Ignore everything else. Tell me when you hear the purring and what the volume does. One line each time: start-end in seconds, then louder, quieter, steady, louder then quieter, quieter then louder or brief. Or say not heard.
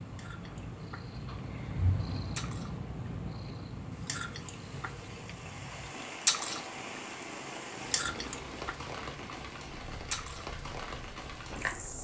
0.0-11.9 quieter.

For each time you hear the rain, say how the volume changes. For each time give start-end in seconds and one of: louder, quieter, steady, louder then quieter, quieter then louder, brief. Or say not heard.
0.0-11.9 louder.